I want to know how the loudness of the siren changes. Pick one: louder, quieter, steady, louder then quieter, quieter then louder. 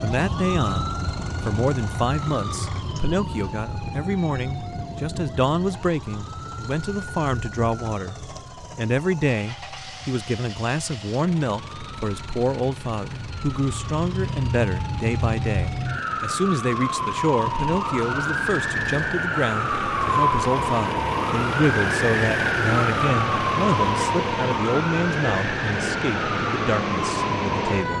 quieter then louder.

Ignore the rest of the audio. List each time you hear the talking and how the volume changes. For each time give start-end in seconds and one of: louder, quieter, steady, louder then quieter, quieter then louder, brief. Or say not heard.
0.0-27.9 steady.